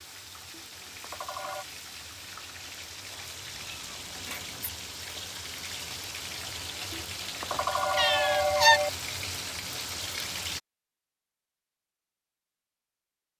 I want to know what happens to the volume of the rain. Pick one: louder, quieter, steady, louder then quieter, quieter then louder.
louder.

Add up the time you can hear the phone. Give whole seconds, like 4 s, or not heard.
3 s.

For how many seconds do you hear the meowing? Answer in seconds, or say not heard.
2 s.